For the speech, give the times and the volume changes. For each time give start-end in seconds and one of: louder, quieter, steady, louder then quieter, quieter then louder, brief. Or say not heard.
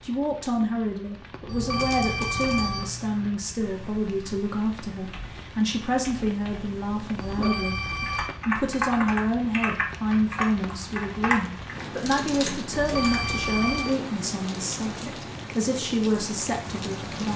0.0-17.3 steady.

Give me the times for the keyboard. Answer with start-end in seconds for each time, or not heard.
1.6-13.2.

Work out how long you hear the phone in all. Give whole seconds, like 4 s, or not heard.
4 s.